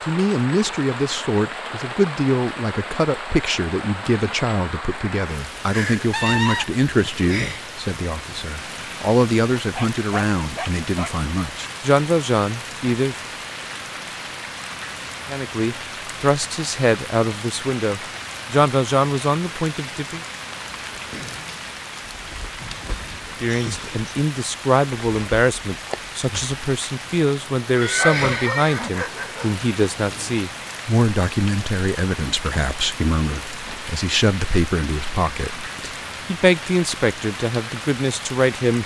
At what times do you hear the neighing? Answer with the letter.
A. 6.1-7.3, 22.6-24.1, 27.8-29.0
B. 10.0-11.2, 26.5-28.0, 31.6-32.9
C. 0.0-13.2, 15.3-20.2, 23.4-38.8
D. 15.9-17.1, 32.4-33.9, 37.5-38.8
A.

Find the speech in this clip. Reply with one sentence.
The speech can be heard from 0.0 to 13.2 s, from 15.3 to 20.2 s and from 23.4 to 38.8 s.